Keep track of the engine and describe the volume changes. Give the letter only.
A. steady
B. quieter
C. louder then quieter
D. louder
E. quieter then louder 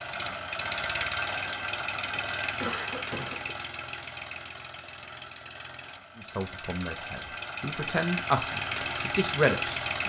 E.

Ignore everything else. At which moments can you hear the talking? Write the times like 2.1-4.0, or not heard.
6.2-10.0.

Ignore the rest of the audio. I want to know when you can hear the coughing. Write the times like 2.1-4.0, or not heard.
2.1-3.5.